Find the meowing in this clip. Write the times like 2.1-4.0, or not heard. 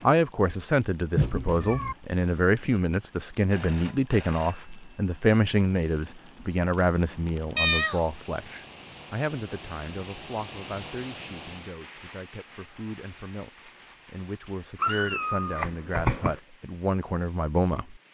1.1-1.9, 7.5-8.1, 14.8-16.4.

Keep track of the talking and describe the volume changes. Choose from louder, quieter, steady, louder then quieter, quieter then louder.
quieter then louder.